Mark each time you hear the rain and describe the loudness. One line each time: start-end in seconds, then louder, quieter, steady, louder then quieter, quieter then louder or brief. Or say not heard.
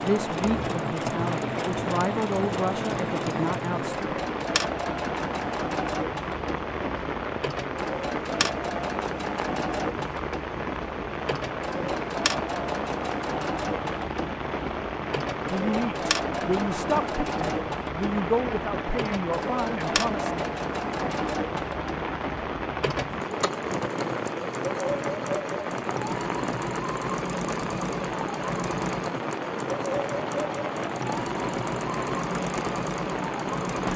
0.0-33.9 steady.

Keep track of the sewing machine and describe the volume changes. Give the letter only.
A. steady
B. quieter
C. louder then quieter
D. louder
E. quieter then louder
A.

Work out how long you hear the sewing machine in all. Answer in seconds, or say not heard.
34 s.